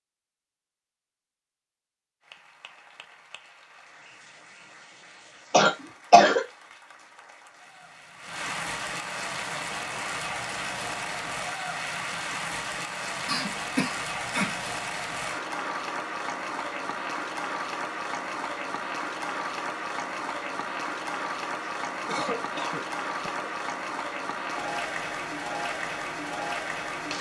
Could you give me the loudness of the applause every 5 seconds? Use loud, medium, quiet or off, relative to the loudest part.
quiet, medium, loud, loud, loud, loud.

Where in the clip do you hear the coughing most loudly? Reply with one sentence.
The volume of the coughing peaks at 6 seconds.